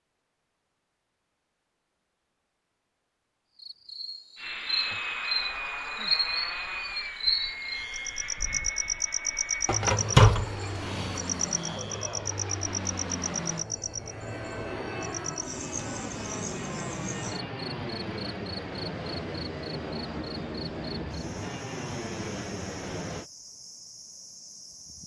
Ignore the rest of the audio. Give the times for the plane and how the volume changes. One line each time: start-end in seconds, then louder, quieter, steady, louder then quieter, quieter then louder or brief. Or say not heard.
4.3-23.3 steady.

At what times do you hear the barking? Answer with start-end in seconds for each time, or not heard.
9.7-11.2.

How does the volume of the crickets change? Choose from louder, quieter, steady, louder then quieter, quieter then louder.
quieter.